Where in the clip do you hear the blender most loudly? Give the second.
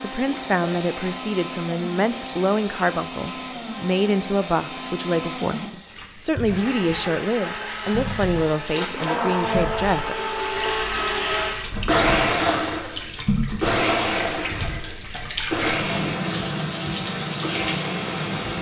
12 s.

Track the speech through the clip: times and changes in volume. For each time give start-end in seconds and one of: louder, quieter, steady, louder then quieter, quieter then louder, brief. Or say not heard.
0.0-10.2 steady.